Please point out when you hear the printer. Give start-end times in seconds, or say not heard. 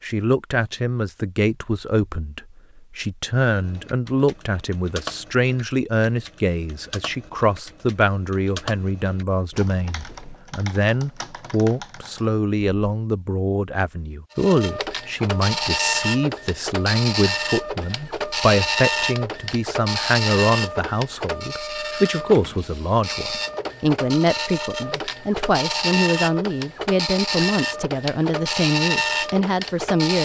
14.3-30.2.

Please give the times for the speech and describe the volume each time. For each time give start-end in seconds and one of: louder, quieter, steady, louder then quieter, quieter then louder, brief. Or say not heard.
0.0-30.2 steady.